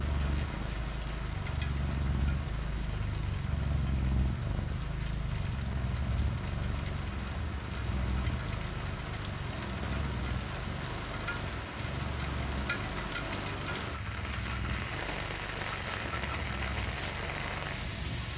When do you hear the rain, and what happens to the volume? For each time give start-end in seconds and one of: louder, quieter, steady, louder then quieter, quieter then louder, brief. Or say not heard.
0.0-18.3 louder.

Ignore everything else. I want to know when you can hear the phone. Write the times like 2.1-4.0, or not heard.
not heard.